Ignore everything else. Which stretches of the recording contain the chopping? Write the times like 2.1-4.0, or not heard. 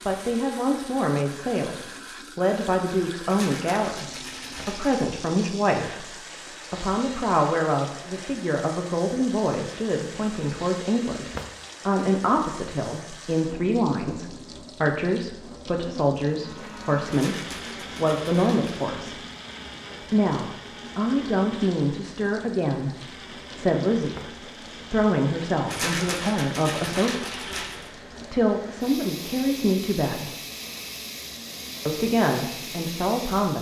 not heard.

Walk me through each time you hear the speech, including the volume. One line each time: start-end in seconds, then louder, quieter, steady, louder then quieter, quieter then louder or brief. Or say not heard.
0.1-19.2 steady
20.0-30.4 steady
31.9-33.5 brief.